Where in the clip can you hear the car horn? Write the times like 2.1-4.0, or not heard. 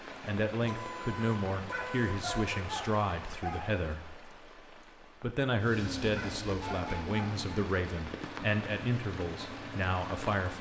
0.6-2.6, 6.6-7.1.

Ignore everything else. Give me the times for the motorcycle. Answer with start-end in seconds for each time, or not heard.
5.6-10.5.